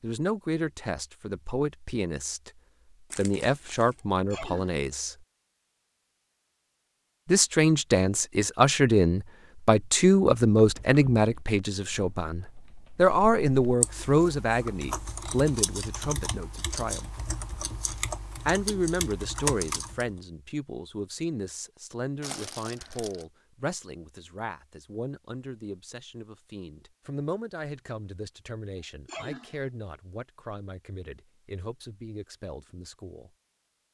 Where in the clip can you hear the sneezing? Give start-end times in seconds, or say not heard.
4.3-4.8, 28.8-29.6.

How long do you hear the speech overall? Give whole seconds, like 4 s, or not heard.
29 s.